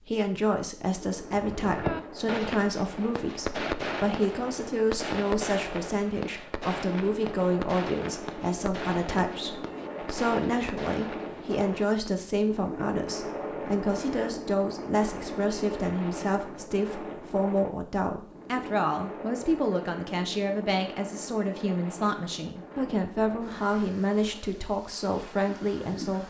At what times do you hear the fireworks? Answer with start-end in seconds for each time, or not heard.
1.3-12.2.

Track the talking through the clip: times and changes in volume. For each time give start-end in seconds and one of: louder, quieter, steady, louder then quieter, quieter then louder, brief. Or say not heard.
0.1-26.2 steady.